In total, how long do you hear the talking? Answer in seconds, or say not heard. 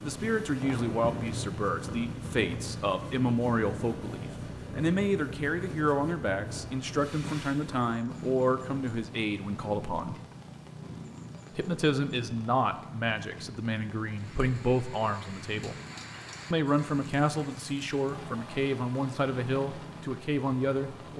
19 s.